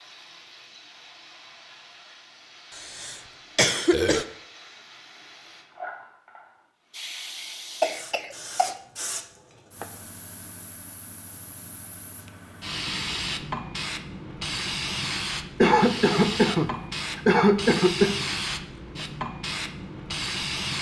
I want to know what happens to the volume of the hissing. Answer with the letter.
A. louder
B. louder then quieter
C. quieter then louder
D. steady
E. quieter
A.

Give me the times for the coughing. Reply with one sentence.
The coughing can be heard from 2.8 to 4.2 s, from 7.8 to 8.8 s and from 15.6 to 18.1 s.